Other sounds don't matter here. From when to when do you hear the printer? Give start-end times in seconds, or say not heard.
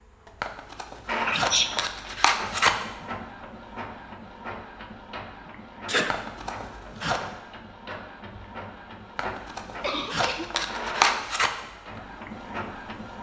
0.0-13.1.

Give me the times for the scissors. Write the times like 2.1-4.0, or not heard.
0.4-2.8, 6.1-7.2, 9.2-11.5.